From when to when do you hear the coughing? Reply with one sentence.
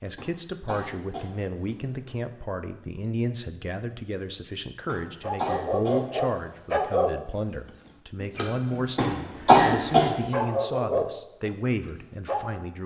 The coughing can be heard from 0.1 to 2.1 s, from 4.8 to 6.8 s and from 8.9 to 10.1 s.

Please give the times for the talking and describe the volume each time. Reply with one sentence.
You can hear the talking from 0.0 to 12.8 s, at a steady volume.